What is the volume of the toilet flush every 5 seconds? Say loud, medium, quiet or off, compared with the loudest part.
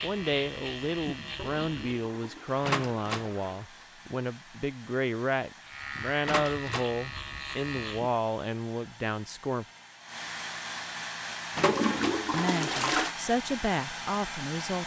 quiet, off, loud.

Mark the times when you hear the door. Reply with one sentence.
You can hear the door from 2.6 to 3.3 s, from 6.2 to 6.9 s and from 11.6 to 12.2 s.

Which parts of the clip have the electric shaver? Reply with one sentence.
You can hear the electric shaver from 0.0 to 2.1 s and from 5.6 to 8.2 s.